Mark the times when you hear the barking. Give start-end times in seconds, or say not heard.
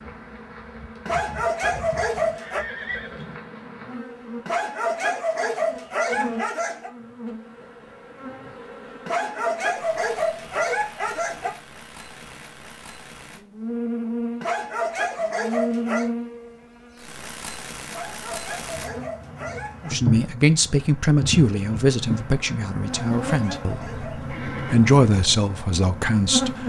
1.1-2.6, 4.5-6.9, 9.1-11.5, 14.4-16.1, 17.9-19.9, 22.9-24.3.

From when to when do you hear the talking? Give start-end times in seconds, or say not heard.
19.9-26.6.